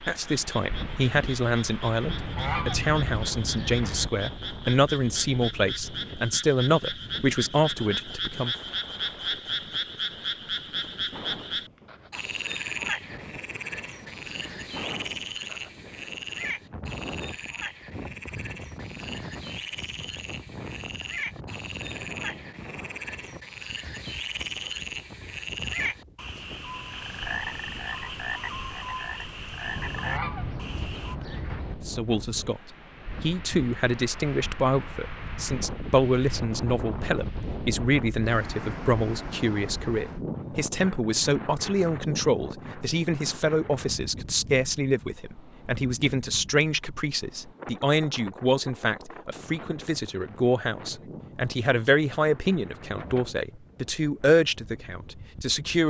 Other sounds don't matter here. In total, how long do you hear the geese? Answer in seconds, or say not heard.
4 s.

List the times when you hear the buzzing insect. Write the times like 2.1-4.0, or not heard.
not heard.